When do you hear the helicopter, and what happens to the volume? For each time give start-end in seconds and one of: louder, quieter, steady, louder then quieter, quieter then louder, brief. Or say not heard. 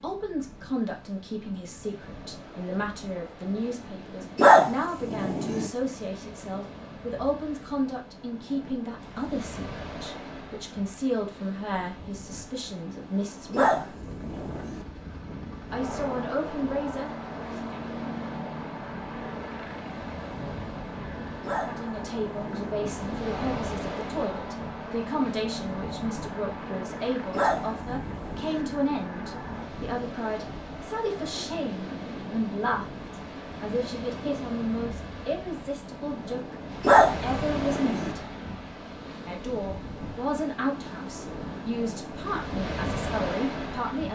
13.9-29.7 steady.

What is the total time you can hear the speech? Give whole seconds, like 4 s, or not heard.
37 s.